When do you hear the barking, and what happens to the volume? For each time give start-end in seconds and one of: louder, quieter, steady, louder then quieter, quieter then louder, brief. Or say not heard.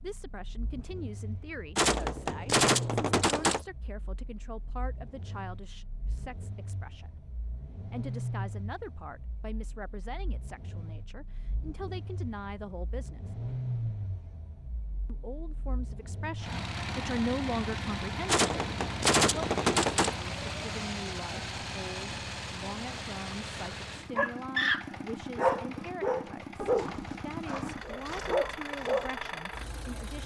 24.1-29.1 quieter then louder.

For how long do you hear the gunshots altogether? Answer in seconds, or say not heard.
4 s.